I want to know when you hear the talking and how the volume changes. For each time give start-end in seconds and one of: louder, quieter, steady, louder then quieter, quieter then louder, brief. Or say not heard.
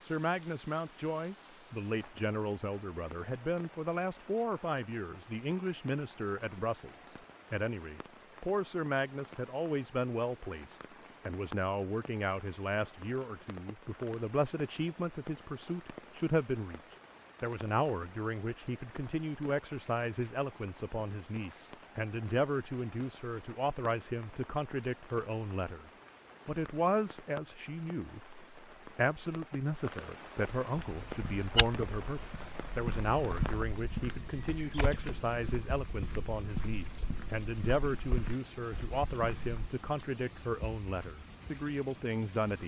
0.0-42.6 steady.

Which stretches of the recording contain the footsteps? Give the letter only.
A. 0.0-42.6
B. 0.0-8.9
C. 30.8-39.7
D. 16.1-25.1
C.